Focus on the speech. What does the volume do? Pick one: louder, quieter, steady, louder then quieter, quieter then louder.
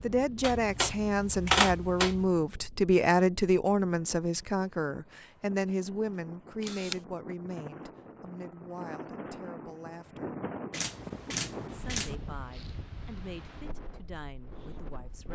quieter.